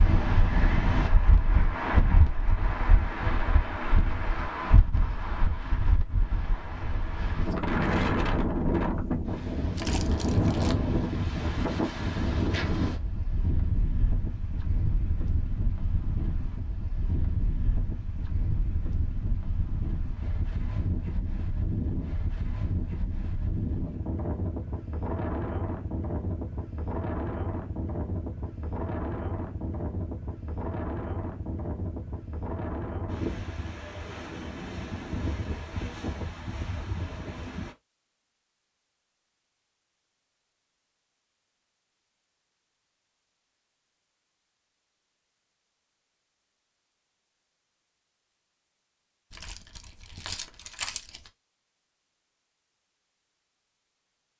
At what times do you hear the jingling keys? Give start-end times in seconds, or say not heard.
9.8-10.8, 49.3-51.3.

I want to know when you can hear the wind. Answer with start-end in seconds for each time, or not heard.
0.0-37.8.